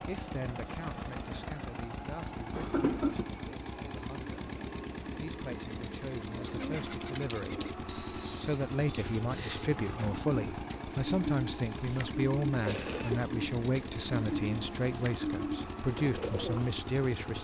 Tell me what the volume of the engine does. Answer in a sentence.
The volume of the engine stays about the same.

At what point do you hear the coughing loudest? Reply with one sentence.
The loudest moment of the coughing is at 3 seconds.